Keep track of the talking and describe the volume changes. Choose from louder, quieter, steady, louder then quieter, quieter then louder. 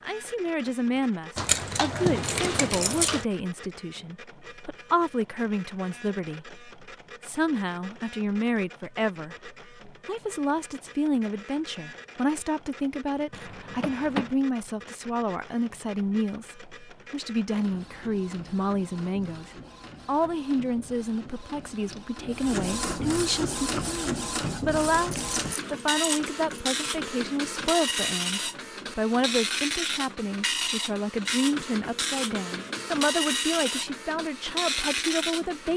steady.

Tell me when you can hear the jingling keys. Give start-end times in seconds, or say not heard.
1.4-3.2, 13.3-14.3, 25.1-26.6.